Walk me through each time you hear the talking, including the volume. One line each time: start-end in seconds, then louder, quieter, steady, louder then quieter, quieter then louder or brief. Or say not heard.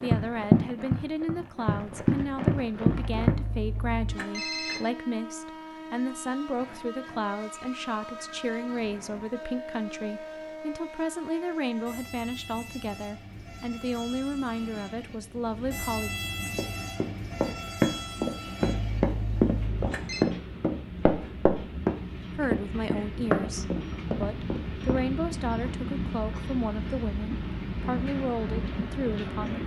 0.0-16.1 steady
22.4-29.6 steady.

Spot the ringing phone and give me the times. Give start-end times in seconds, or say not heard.
2.9-4.8, 18.6-20.2.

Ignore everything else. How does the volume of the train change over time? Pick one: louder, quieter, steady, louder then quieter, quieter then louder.
louder.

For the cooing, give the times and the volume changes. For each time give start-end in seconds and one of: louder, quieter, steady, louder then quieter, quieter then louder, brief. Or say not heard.
not heard.